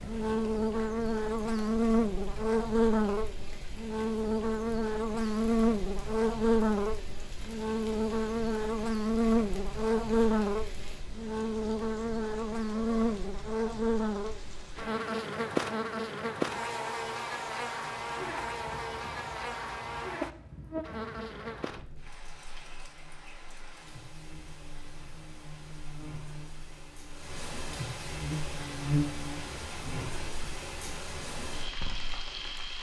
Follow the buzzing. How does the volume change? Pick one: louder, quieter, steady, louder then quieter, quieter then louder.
quieter.